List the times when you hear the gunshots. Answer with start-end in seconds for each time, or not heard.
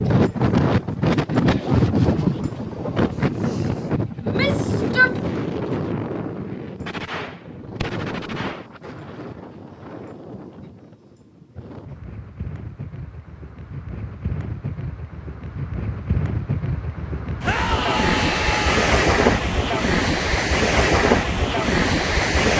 6.8-8.7.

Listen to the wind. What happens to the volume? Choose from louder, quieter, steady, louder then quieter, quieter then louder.
quieter then louder.